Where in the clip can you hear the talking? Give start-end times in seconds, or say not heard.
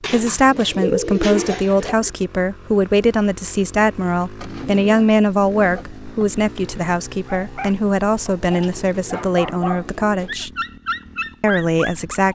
0.1-10.5, 11.4-12.2.